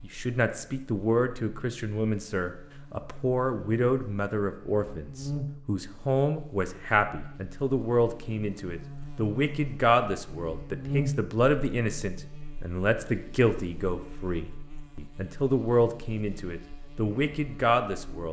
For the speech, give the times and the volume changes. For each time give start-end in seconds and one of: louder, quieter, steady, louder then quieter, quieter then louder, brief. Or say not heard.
0.0-18.2 steady.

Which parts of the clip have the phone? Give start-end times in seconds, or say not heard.
not heard.